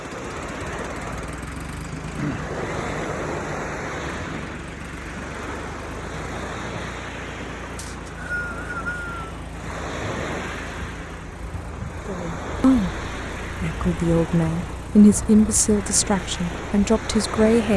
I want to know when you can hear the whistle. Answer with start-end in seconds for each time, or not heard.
7.8-9.2.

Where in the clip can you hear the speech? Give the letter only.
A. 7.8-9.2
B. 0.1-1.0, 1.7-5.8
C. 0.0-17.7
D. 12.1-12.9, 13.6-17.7
D.